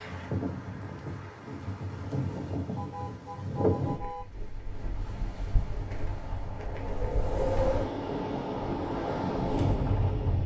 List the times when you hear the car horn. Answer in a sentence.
You can hear the car horn from 2.8 to 4.2 s.